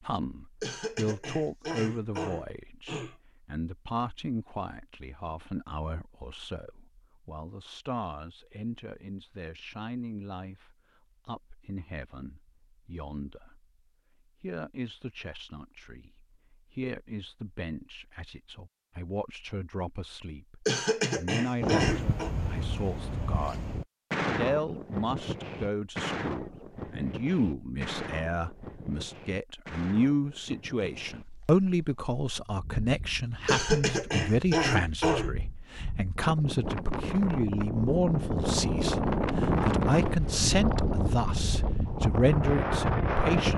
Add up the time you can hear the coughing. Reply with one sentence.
The coughing can be heard for 6 seconds in total.